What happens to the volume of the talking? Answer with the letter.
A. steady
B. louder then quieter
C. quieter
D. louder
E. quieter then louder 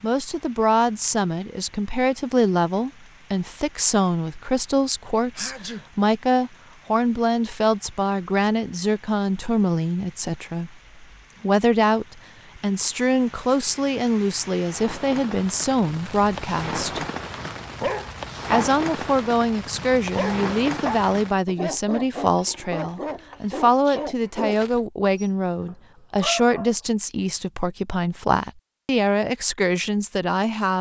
A.